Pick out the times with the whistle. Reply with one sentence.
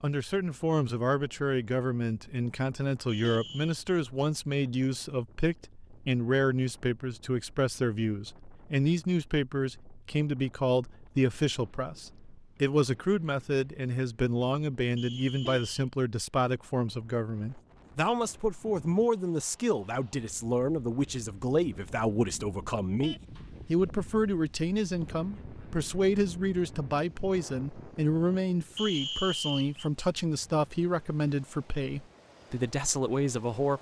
You can hear the whistle from 3.0 to 3.8 s, from 14.9 to 15.7 s and from 28.8 to 29.9 s.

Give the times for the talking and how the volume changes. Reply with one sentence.
The talking can be heard from 0.0 to 33.7 s, at a steady volume.